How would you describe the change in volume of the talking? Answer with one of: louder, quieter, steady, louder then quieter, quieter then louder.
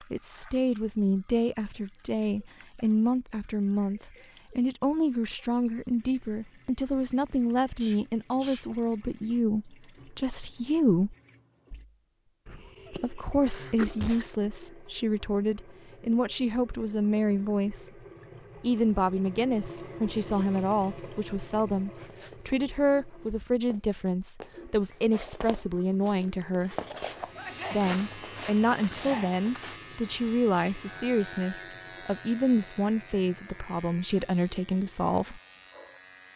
steady.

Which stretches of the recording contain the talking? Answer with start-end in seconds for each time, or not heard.
0.1-11.2, 12.9-17.9, 18.6-26.8, 27.7-35.4.